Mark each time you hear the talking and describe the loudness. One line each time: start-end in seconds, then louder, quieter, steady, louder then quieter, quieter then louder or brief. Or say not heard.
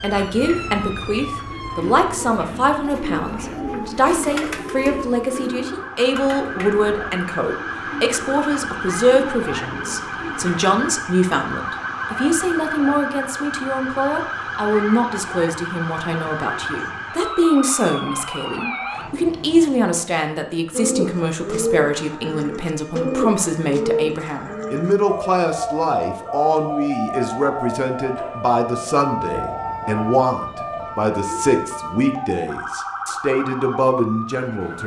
0.0-34.8 steady.